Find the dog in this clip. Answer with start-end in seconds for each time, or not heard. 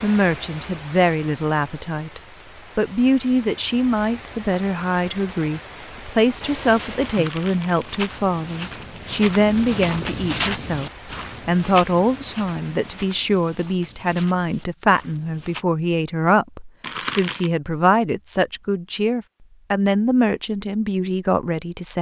not heard.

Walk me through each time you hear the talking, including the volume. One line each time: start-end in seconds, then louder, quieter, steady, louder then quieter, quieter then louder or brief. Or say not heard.
0.0-21.9 steady.